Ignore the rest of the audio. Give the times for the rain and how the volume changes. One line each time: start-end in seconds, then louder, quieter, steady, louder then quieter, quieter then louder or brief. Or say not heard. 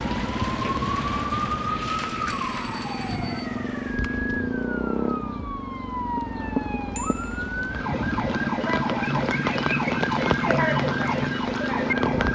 0.0-12.3 quieter then louder.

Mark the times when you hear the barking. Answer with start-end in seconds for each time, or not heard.
not heard.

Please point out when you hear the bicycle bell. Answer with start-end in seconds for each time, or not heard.
2.2-3.5, 7.0-7.5.